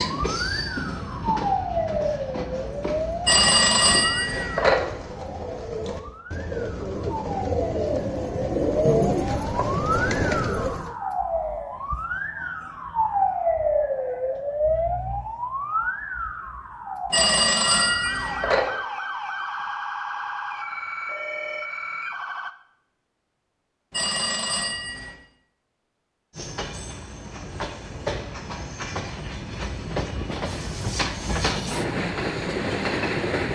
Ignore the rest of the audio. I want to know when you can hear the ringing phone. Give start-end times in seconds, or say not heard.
3.2-4.8, 17.1-18.6, 23.9-25.2.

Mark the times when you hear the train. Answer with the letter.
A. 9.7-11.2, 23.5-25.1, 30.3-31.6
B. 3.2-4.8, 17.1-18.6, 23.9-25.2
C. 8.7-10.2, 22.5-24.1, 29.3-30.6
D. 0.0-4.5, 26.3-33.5
D.